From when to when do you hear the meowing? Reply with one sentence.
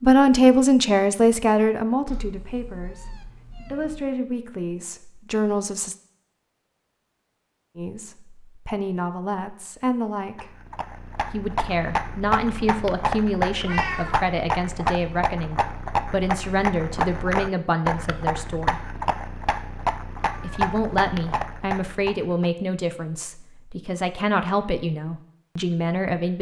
The meowing can be heard from 2.0 to 4.1 s, from 13.7 to 14.2 s and from 20.2 to 20.7 s.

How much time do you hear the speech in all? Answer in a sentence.
You can hear the speech for 22 seconds altogether.